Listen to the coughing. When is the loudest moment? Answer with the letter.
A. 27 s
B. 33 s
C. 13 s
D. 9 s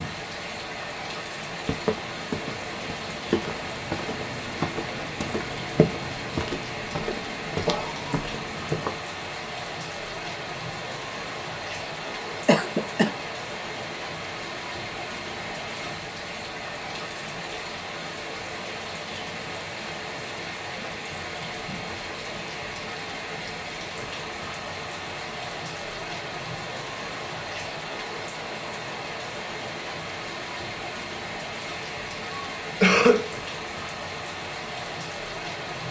B.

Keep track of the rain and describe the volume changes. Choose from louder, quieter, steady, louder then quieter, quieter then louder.
steady.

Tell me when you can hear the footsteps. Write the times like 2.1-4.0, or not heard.
1.6-9.0.